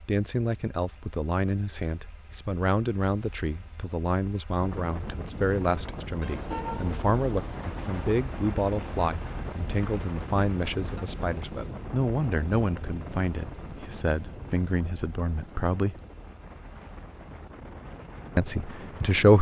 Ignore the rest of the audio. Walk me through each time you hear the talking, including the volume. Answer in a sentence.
The talking can be heard from 0.1 to 16.0 s, at a steady volume; and briefly from 18.4 to 19.3 s.